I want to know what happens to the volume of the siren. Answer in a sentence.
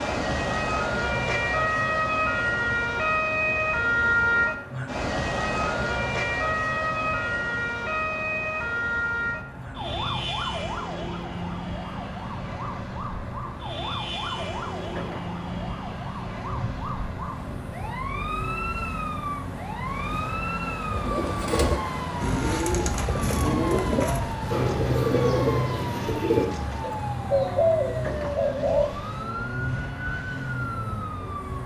The loudness of the siren goes down.